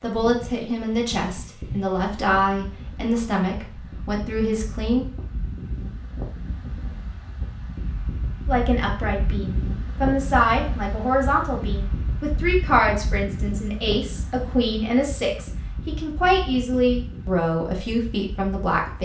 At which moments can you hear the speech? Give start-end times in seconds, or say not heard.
0.0-5.0, 8.4-18.9.